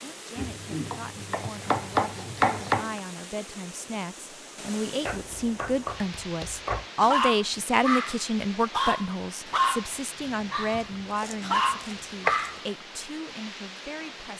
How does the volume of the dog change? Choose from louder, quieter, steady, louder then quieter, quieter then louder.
quieter then louder.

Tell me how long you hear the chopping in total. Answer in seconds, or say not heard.
6 s.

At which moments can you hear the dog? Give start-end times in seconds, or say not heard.
7.0-12.6.